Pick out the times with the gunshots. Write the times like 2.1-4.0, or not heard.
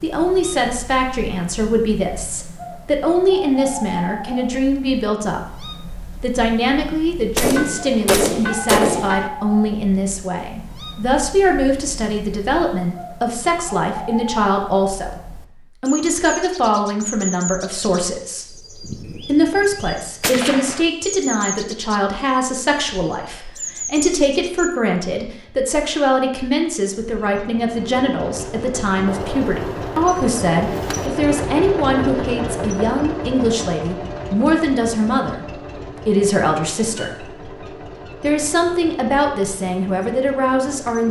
7.3-9.3, 18.8-19.6, 20.2-20.9, 29.1-31.1.